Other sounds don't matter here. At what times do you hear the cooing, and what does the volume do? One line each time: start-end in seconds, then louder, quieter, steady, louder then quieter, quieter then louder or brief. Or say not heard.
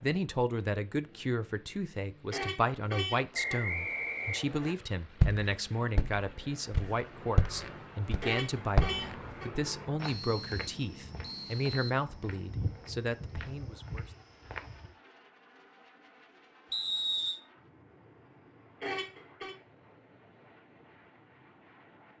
not heard.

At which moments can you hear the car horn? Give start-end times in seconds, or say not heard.
2.3-3.6, 8.2-9.5, 18.8-19.6.